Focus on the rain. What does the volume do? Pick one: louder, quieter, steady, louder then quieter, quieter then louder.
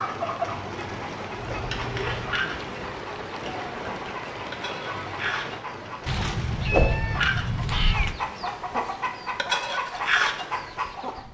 quieter.